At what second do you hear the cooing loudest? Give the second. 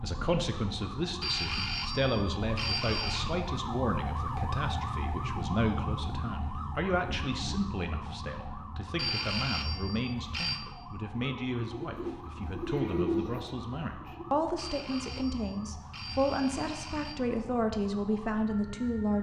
13 s.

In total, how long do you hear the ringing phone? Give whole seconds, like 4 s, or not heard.
6 s.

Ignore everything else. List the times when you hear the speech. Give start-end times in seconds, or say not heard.
0.0-19.1.